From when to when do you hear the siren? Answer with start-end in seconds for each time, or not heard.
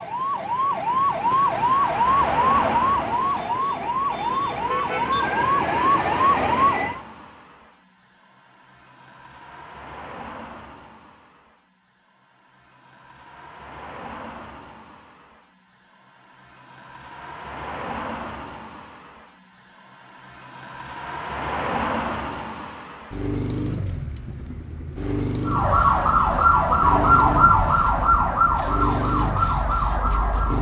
0.0-7.0, 25.4-30.5.